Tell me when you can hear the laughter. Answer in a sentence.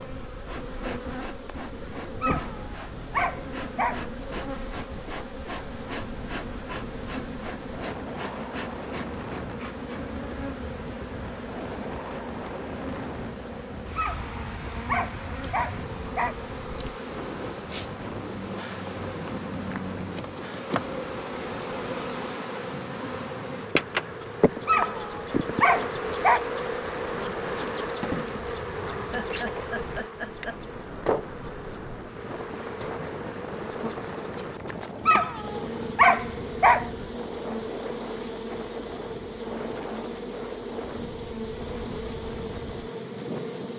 The laughter can be heard from 28.9 to 30.6 s.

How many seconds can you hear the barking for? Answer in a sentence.
The barking can be heard for 8 seconds in total.